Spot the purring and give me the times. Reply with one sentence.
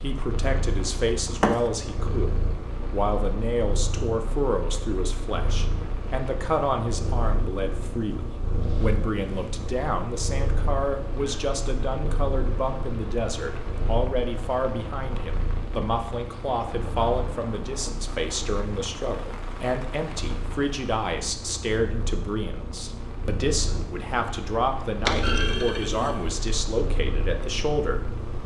You can hear the purring from 0.0 to 28.4 s.